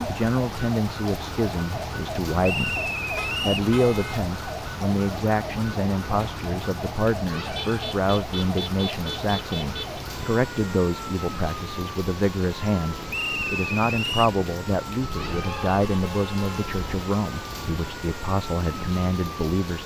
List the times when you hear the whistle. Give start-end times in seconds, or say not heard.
2.4-3.7, 13.1-14.3.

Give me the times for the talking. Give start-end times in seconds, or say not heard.
0.0-2.8, 3.4-19.8.